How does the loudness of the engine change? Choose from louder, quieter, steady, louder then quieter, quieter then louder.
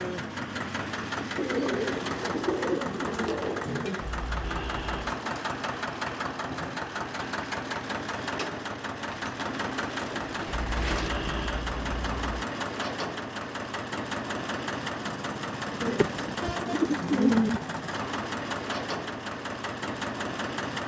steady.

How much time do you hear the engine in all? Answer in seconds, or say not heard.
21 s.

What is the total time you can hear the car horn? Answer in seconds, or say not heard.
3 s.